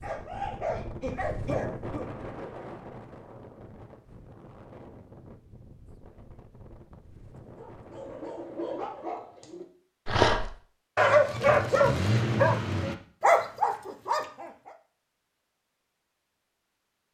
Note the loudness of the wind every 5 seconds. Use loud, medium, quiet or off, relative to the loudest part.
loud, medium, off, off.